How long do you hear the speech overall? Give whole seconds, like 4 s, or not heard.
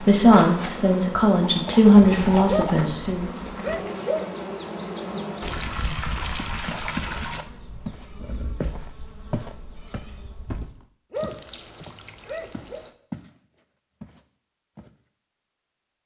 3 s.